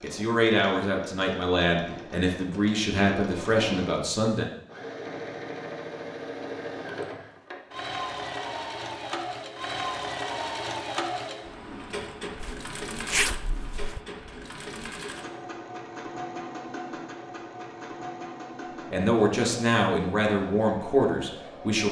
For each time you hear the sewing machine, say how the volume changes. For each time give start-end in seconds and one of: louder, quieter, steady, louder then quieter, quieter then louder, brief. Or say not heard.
0.0-21.8 louder then quieter.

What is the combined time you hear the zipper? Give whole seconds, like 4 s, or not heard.
2 s.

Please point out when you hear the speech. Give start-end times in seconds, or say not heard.
0.0-4.5, 18.9-21.8.